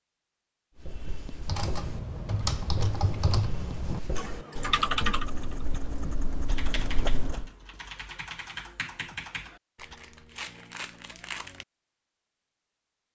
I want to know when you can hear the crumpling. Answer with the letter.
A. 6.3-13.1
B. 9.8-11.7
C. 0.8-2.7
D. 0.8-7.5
B.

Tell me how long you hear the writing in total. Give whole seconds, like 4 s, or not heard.
7 s.